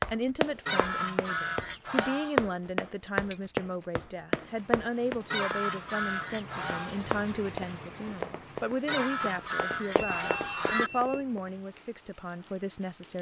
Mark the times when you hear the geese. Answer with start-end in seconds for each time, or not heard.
0.7-2.4, 5.3-7.0, 8.8-10.9.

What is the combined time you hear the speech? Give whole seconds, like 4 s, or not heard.
13 s.